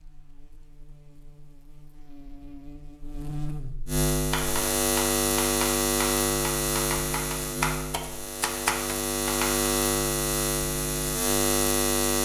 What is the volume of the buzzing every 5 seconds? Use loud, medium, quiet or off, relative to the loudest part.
medium, loud, loud.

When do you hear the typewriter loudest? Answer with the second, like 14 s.
9 s.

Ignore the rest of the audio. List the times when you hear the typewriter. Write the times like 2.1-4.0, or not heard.
4.1-9.7.